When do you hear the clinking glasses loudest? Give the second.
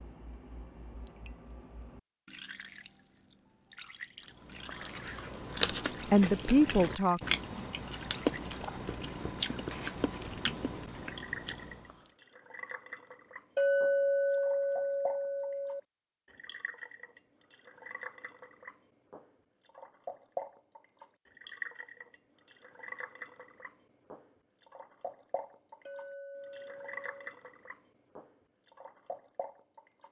14 s.